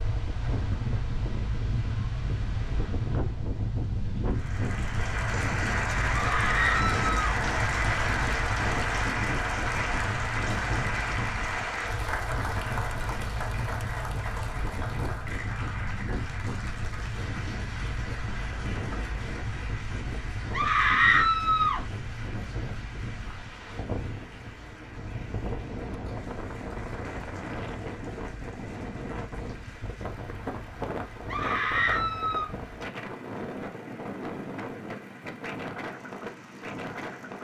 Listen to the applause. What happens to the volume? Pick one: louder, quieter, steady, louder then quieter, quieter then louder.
quieter.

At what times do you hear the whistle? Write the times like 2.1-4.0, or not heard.
not heard.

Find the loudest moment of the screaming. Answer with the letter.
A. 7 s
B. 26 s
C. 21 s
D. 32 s
C.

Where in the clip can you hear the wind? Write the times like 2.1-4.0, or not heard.
0.0-37.3.